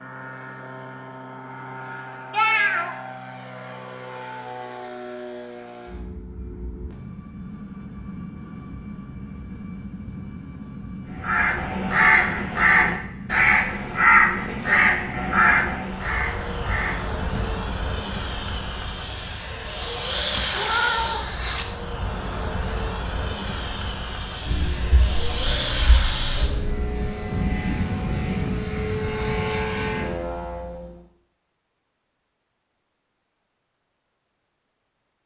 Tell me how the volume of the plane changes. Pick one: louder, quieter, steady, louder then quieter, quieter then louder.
louder.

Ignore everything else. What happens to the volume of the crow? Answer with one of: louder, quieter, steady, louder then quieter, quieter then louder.
quieter.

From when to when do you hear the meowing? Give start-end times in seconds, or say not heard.
2.3-3.0, 19.8-21.6, 24.4-27.1.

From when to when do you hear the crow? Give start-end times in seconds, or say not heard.
11.2-17.6.